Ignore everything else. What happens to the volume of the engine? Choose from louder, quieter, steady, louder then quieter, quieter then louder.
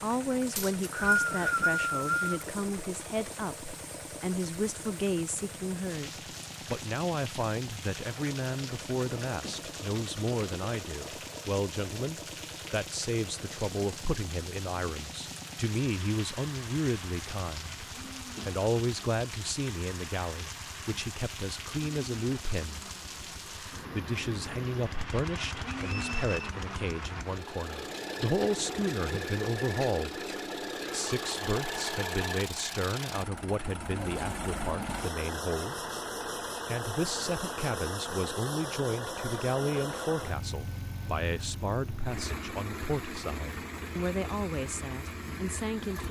louder.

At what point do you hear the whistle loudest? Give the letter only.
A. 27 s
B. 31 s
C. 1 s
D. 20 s
C.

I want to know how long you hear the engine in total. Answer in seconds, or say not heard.
46 s.